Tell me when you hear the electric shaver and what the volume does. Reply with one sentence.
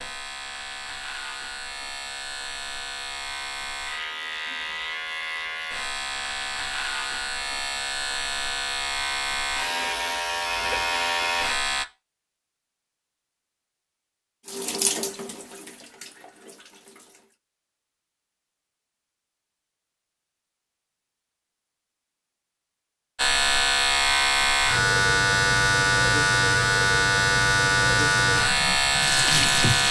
You can hear the electric shaver from 0.0 to 11.8 s, getting louder; and from 23.1 to 29.8 s, at a steady volume.